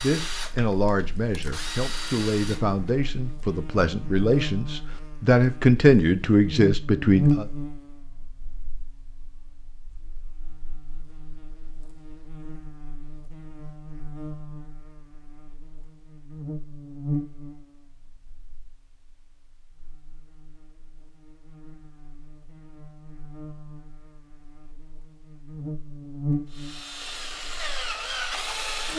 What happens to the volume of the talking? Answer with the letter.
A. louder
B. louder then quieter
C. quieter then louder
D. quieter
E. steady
A.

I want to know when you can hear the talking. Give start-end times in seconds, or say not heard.
0.0-7.5.